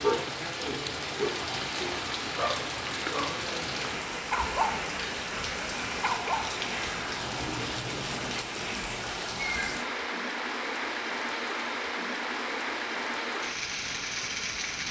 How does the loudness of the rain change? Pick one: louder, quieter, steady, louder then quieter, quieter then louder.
steady.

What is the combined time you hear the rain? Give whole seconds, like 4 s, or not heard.
15 s.